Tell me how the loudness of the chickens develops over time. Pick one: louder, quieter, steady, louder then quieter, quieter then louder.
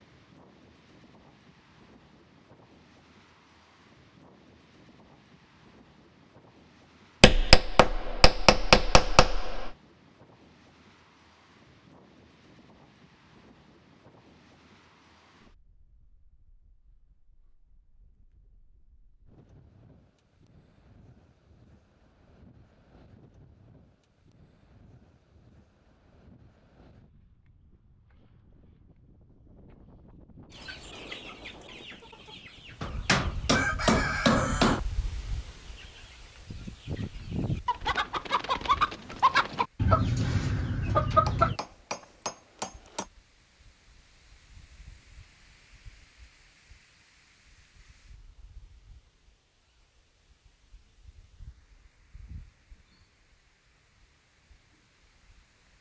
louder.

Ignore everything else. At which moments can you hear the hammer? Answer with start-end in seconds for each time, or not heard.
7.2-9.8, 32.8-34.8, 41.2-43.0.